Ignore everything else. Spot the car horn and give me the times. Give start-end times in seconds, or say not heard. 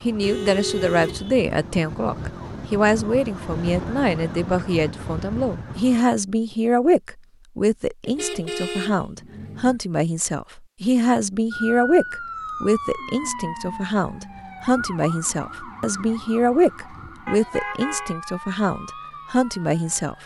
0.2-1.4, 8.1-9.8, 17.2-18.1.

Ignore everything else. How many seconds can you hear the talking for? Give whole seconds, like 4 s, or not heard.
20 s.